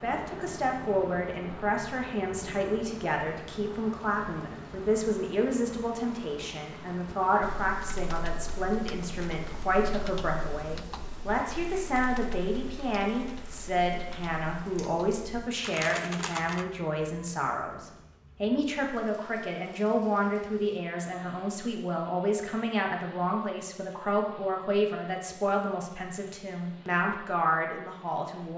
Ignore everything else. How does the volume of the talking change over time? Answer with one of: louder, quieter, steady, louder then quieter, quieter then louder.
steady.